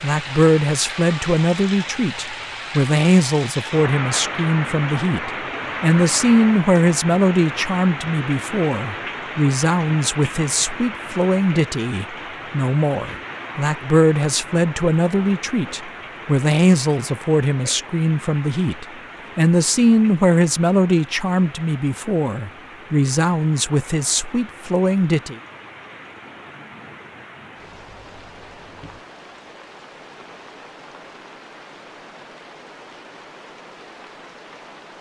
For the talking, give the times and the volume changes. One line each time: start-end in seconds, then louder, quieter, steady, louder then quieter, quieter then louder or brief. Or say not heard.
0.0-25.4 steady.